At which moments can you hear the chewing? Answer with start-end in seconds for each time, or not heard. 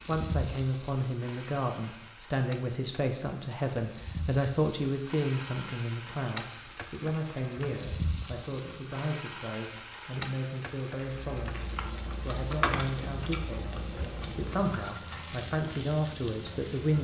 11.2-14.8.